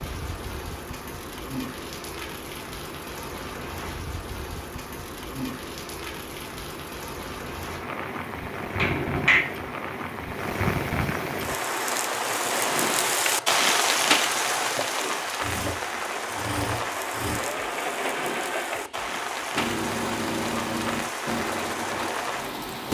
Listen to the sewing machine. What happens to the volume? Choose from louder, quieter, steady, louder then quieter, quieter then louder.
louder.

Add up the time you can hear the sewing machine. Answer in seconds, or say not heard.
11 s.